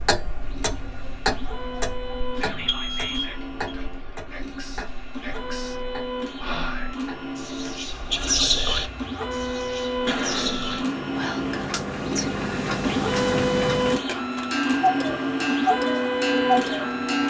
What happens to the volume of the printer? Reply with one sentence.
The volume of the printer goes up.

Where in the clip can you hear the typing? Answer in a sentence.
You can't hear the typing here.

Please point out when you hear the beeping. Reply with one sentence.
You can hear the beeping from 2.5 to 3.8 s.